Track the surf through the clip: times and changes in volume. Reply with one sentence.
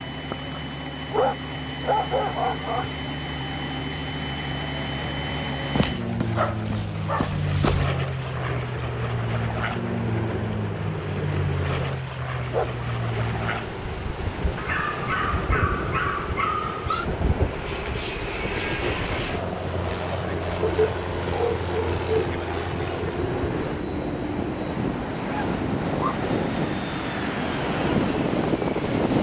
You can hear the surf from 7.7 to 29.1 s, getting louder.